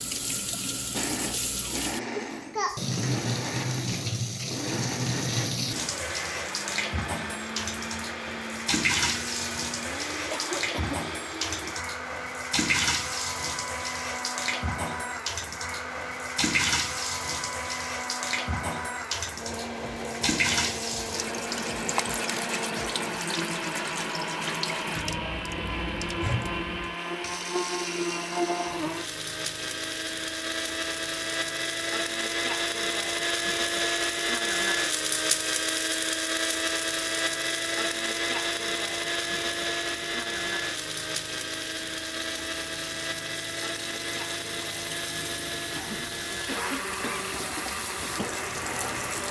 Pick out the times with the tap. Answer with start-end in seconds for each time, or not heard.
0.0-49.2.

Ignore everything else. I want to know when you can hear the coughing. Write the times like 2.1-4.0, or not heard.
10.3-11.0, 45.7-47.2.